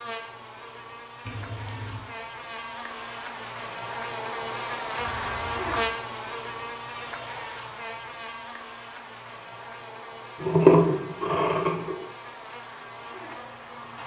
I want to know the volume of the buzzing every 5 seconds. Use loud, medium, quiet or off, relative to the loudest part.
loud, loud, medium.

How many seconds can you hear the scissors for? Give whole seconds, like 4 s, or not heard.
3 s.